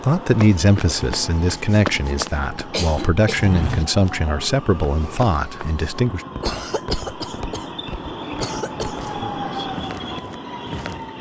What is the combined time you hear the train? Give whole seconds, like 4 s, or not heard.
11 s.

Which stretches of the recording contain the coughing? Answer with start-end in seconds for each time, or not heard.
2.7-3.9, 6.4-7.7, 8.4-9.0.